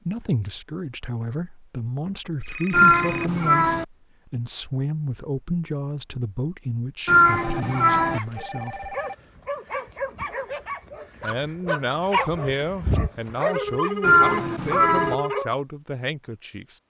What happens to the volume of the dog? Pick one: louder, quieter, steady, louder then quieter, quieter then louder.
louder.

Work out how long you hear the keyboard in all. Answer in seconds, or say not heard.
not heard.